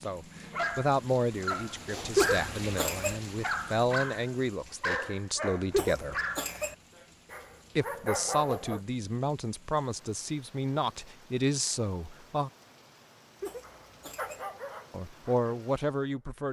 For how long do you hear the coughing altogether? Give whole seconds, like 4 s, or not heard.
3 s.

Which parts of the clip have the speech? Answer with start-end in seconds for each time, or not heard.
0.0-6.2, 7.8-12.5, 14.9-16.4.